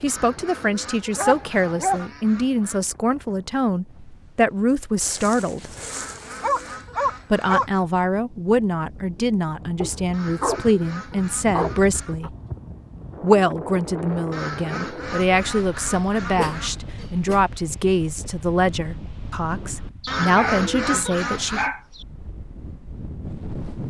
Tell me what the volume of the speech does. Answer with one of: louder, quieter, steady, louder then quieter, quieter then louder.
steady.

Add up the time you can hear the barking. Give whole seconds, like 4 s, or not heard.
9 s.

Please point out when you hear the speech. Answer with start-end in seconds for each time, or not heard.
0.0-5.7, 7.3-12.3, 13.2-21.7.